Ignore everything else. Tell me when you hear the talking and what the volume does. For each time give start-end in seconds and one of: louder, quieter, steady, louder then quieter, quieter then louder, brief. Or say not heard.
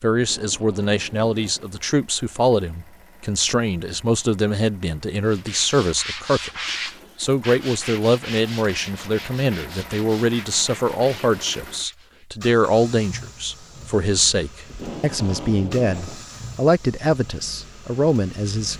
0.0-18.7 steady.